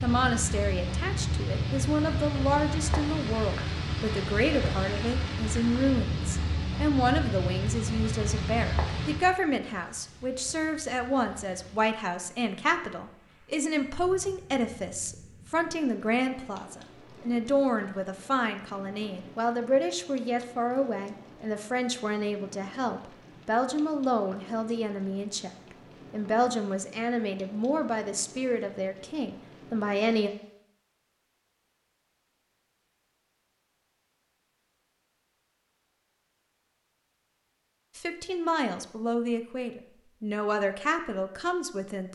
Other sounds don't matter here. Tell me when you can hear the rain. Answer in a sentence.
You can hear the rain from 0.0 to 30.6 s.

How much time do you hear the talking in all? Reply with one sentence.
The talking can be heard for 34 seconds in total.